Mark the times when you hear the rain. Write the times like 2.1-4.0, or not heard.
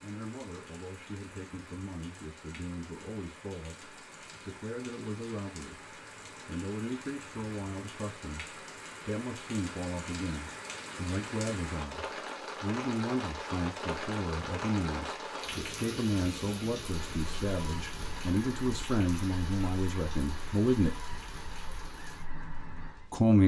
0.0-23.3.